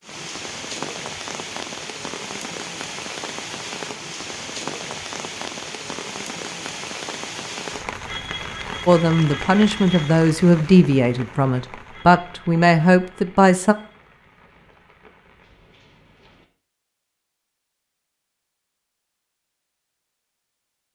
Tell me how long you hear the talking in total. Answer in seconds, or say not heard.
5 s.